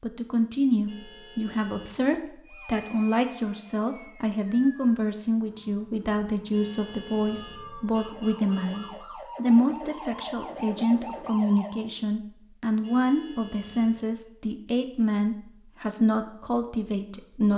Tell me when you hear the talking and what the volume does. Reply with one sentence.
The talking can be heard from 0.0 to 17.5 s, at a steady volume.